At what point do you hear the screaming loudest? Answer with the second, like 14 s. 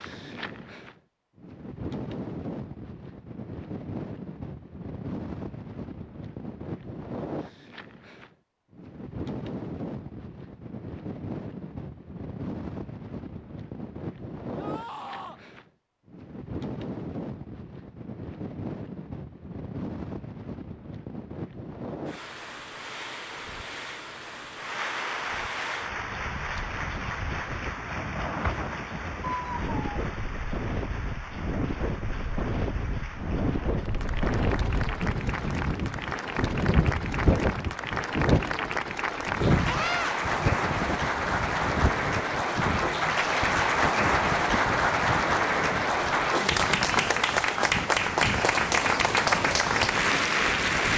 40 s.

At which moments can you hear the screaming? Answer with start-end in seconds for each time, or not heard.
14.6-15.4, 29.3-29.8, 39.6-40.1.